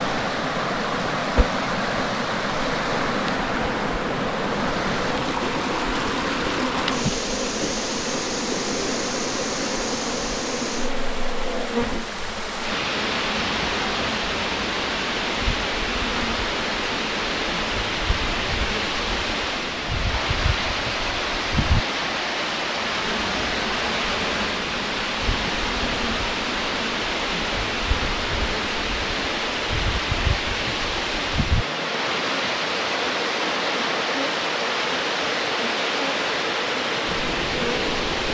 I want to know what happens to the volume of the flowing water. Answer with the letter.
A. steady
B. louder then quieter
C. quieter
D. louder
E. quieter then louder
A.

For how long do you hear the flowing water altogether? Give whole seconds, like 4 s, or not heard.
38 s.